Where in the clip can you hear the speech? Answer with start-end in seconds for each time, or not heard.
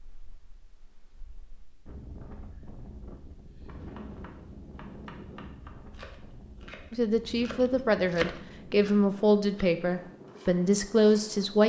6.9-11.6.